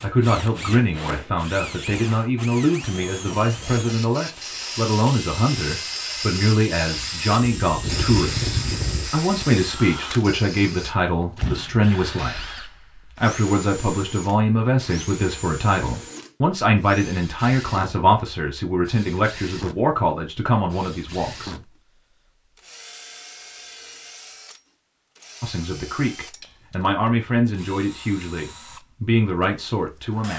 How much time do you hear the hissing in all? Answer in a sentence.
You can hear the hissing for 9 seconds altogether.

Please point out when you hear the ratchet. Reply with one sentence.
The ratchet can't be heard in this clip.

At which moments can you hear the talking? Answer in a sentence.
You can hear the talking from 0.0 to 21.6 s and from 25.4 to 30.3 s.